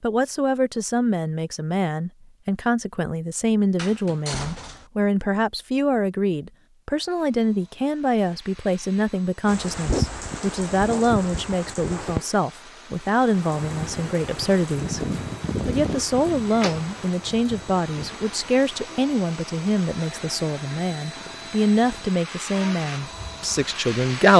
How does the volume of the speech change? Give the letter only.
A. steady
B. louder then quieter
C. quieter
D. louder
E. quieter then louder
A.